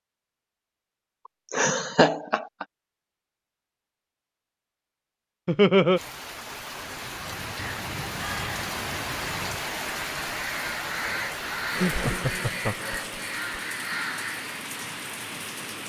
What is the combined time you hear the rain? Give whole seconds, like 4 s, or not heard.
10 s.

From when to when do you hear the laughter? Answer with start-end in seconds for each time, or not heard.
1.5-2.6, 5.5-6.0, 11.8-13.4.